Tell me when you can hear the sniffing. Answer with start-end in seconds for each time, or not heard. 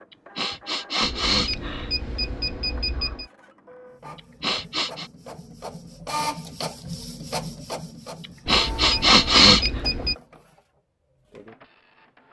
0.3-1.9, 4.2-5.1, 8.4-9.7.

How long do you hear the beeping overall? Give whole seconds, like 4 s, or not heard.
4 s.